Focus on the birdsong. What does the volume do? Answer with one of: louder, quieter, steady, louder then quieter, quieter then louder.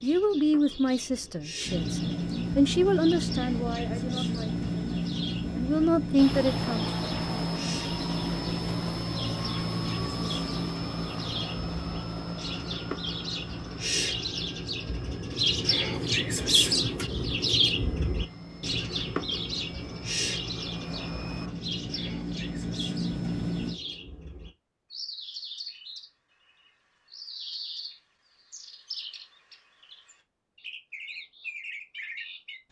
louder then quieter.